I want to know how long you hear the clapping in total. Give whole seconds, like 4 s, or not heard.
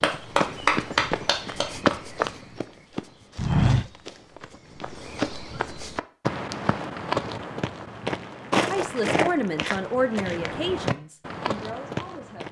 2 s.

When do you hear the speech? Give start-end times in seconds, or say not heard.
8.7-12.4.